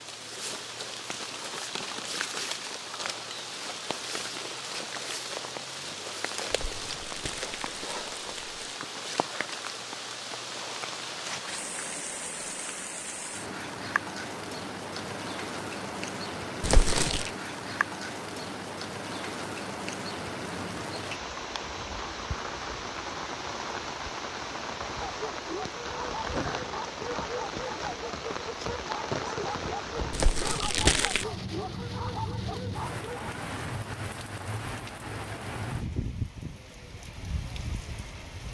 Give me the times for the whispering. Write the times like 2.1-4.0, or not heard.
not heard.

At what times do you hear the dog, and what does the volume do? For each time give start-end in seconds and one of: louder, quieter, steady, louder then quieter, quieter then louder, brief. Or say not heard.
25.0-33.3 steady.